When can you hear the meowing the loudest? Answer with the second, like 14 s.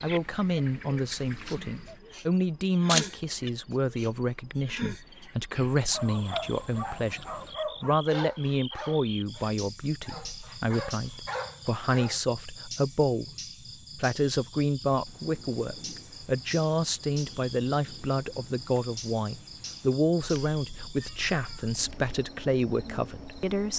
3 s.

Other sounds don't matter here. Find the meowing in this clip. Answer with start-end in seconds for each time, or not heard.
2.9-3.5, 20.2-22.2.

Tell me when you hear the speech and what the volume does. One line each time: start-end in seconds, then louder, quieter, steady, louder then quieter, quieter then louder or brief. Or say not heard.
0.0-13.3 steady
13.9-23.7 steady.